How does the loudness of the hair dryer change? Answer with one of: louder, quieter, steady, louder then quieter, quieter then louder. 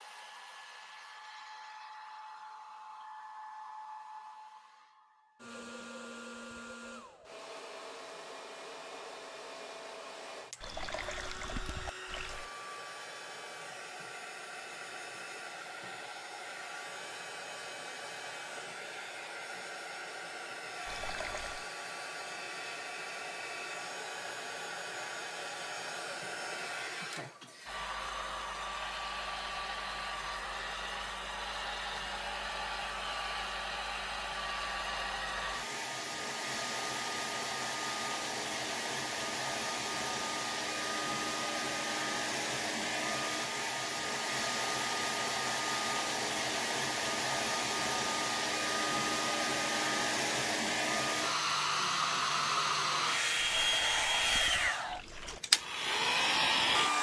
louder.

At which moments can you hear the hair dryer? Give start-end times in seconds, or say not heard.
0.0-56.9.